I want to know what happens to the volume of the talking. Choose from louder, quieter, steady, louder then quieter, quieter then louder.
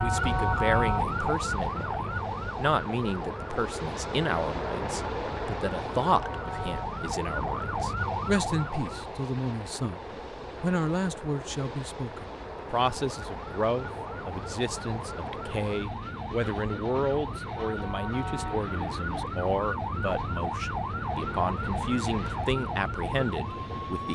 steady.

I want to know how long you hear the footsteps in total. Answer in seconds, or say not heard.
not heard.